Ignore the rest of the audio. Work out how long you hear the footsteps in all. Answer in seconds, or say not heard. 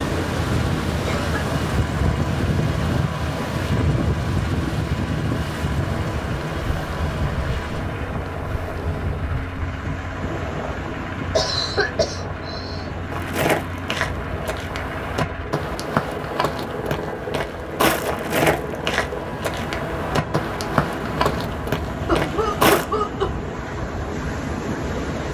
10 s.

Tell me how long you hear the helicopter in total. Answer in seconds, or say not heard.
25 s.